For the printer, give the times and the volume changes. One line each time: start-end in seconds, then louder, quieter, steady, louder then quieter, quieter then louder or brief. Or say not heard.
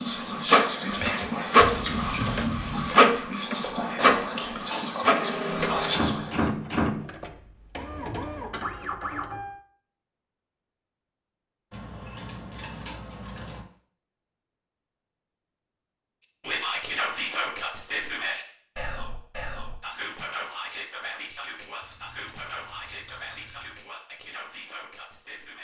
0.0-9.6 quieter.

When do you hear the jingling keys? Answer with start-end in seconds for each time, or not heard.
1.6-3.0, 11.7-13.6, 21.8-23.7.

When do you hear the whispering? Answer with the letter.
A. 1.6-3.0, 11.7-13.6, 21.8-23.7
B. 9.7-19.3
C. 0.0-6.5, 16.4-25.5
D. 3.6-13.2
C.